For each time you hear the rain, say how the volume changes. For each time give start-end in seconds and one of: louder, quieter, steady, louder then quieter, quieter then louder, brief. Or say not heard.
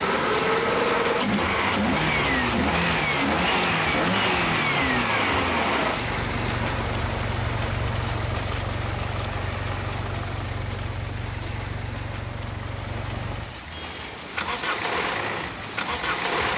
0.0-16.5 quieter.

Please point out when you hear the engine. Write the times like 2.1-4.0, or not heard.
0.0-16.5.